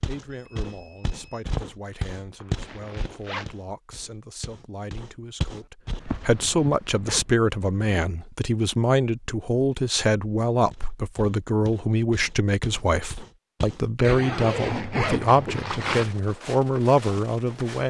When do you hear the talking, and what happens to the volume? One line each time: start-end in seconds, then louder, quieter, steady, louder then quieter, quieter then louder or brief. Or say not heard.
0.1-17.8 louder.